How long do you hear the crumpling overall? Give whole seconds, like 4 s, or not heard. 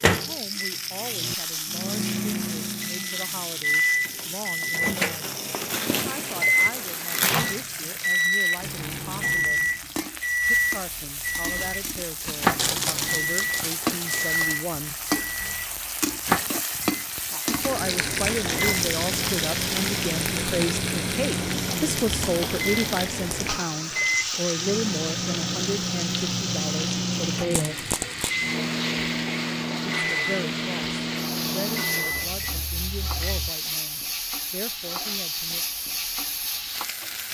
5 s.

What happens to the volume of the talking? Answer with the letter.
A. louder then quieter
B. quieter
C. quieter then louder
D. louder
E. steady
A.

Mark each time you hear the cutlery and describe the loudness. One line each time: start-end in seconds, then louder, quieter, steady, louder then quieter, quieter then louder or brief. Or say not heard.
not heard.